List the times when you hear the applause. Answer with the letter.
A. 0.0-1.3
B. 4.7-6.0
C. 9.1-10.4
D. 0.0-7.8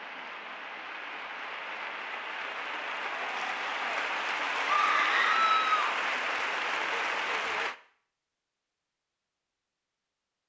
D.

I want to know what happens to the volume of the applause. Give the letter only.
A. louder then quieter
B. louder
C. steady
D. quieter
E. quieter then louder
B.